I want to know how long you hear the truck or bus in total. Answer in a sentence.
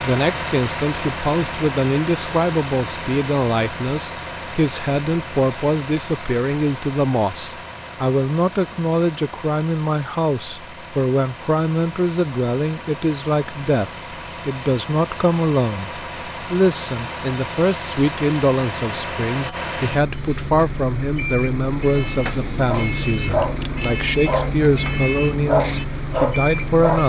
You can hear the truck or bus for 27 seconds altogether.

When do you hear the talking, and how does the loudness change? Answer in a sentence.
The talking can be heard from 0.0 to 27.0 s, at a steady volume.